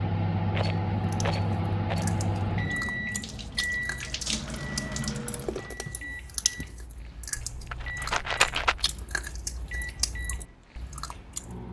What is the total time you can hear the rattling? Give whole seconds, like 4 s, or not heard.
3 s.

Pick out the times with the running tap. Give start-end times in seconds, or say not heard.
3.0-5.7.